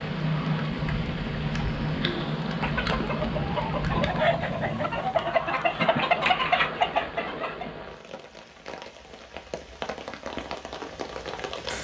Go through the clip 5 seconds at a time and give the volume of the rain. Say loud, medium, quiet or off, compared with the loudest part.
loud, medium, medium.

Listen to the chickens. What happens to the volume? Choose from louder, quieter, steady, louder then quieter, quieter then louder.
louder.